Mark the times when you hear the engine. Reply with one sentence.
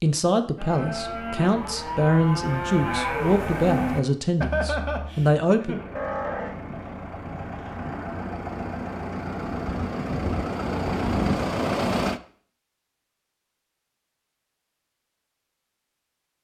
You can hear the engine from 5.7 to 12.2 s.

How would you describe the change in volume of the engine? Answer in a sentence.
The loudness of the engine goes up.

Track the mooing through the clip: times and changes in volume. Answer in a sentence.
The mooing can be heard from 0.6 to 8.2 s, getting louder then quieter.